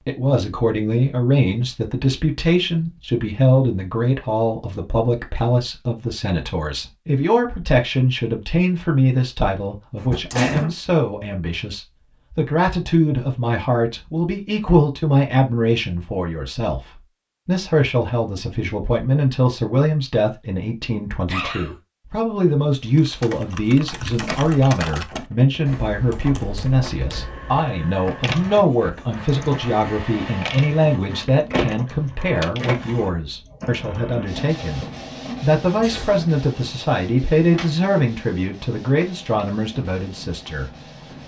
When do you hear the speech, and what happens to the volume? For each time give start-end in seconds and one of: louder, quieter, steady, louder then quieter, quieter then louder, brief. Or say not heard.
0.1-40.8 steady.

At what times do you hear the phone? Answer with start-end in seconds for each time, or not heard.
not heard.